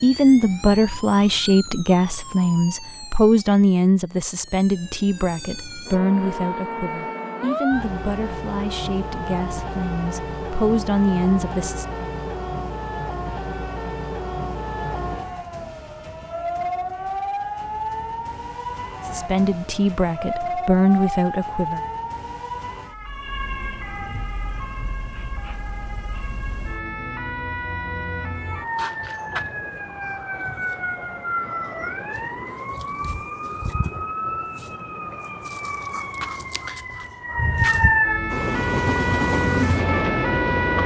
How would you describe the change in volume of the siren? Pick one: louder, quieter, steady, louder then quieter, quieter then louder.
louder.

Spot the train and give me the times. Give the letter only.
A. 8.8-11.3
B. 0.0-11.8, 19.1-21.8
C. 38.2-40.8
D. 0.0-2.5
C.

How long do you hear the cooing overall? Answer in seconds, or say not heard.
not heard.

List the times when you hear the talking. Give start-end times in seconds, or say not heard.
0.0-11.8, 19.1-21.8.